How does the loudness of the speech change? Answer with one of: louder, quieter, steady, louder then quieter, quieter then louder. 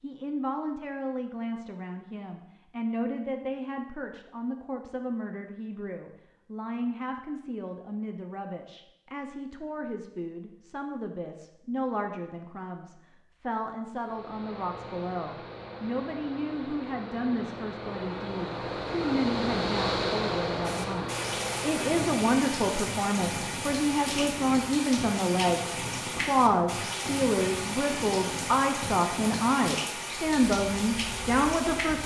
louder.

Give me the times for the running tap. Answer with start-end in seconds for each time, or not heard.
20.6-32.0.